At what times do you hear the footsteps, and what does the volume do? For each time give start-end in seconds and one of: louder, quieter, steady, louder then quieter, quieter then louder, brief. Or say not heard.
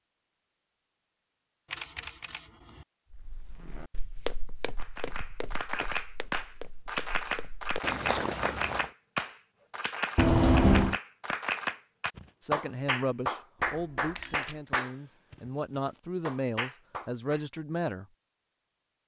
3.1-8.9 quieter then louder.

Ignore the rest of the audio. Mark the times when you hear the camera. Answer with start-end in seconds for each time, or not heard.
1.7-2.4, 10.2-11.0, 13.7-14.6.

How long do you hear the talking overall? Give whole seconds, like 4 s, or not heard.
6 s.